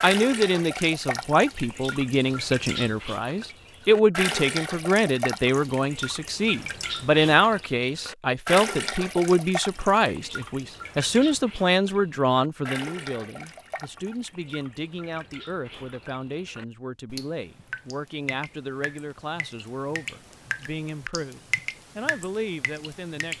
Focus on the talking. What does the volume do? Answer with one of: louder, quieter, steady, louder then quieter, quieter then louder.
quieter.